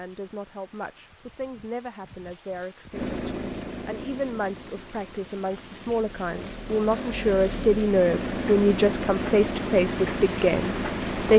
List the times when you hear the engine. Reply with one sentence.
The engine can be heard from 2.9 to 11.3 s.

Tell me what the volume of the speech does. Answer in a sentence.
The loudness of the speech goes up.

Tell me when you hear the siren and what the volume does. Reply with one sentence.
You can't hear the siren here.